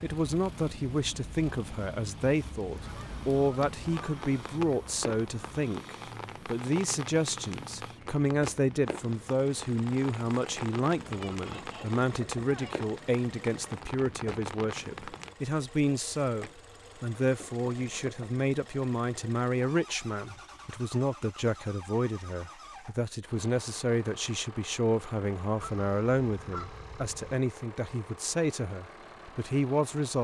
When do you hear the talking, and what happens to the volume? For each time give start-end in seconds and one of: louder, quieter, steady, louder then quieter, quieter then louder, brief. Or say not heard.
0.0-30.1 steady.